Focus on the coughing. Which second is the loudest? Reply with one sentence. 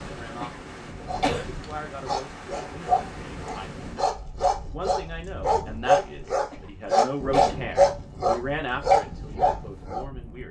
The loudest moment of the coughing is at 1 second.